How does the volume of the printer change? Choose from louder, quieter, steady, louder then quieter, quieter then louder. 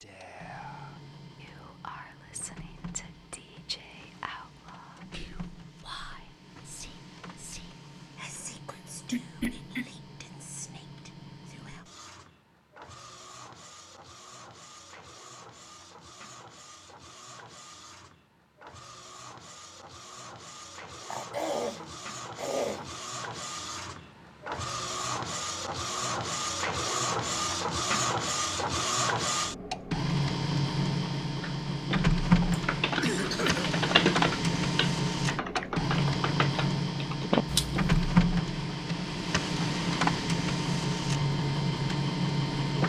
louder.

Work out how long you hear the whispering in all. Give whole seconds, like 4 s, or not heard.
12 s.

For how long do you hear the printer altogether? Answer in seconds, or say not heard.
43 s.